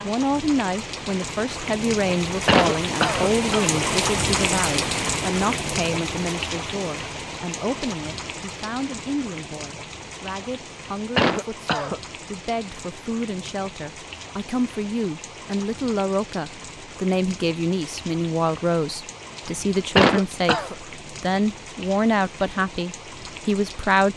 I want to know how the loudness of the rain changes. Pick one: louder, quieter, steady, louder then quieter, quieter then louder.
quieter.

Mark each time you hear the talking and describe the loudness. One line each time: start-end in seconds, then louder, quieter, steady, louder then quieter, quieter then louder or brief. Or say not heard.
0.0-24.1 quieter then louder.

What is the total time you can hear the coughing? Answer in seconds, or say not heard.
3 s.